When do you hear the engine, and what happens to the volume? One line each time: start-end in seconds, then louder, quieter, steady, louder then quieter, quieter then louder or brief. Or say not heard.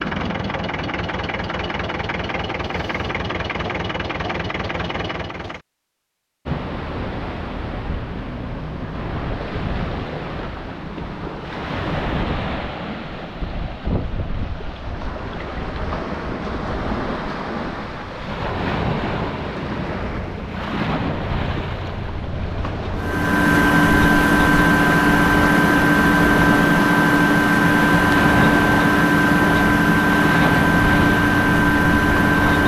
0.0-5.6 steady
22.9-32.6 steady.